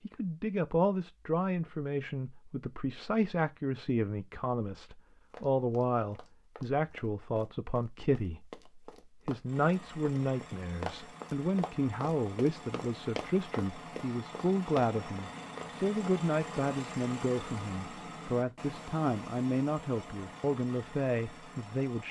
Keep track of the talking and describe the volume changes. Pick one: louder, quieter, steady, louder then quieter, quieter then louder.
steady.